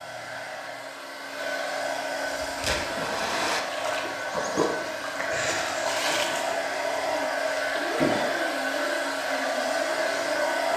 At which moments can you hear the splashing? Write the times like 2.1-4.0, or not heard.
2.4-8.0.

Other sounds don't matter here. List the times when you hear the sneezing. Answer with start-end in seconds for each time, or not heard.
not heard.